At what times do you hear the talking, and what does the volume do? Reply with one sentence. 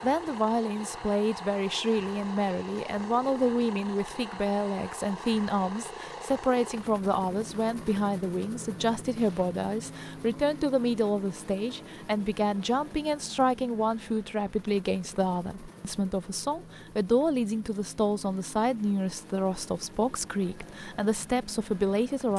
The talking can be heard from 0.0 to 22.3 s, at a steady volume.